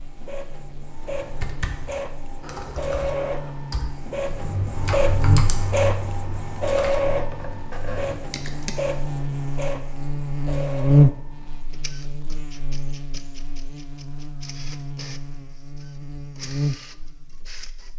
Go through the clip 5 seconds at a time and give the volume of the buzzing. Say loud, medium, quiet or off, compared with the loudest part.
quiet, medium, loud, medium.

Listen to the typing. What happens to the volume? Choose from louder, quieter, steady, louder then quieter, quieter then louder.
louder then quieter.